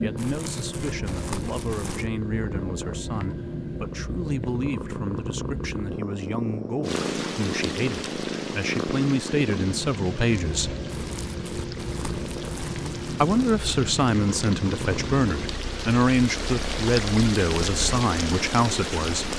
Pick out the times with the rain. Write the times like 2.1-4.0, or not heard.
6.8-19.3.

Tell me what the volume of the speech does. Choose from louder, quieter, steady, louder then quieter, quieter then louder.
louder.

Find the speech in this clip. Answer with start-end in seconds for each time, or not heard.
0.0-10.8, 13.1-19.3.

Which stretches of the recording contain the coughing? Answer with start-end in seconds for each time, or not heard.
not heard.